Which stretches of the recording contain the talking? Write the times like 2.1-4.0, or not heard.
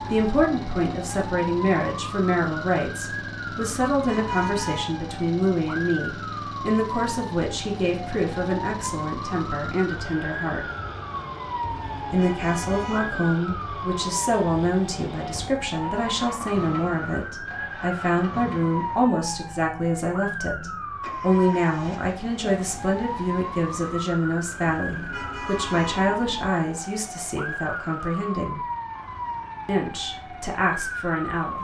0.0-10.6, 12.1-28.6, 29.6-31.6.